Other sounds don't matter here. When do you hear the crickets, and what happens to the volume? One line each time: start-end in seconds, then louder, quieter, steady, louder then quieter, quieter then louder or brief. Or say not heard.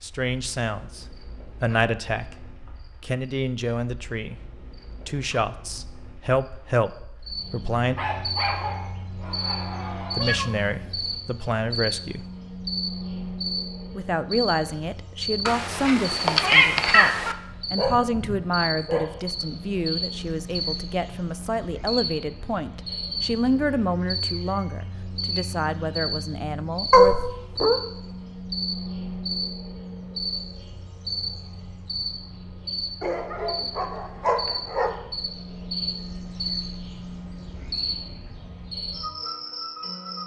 0.0-40.2 louder.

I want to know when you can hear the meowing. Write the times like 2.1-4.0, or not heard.
10.2-11.2, 15.4-17.4, 26.9-27.8.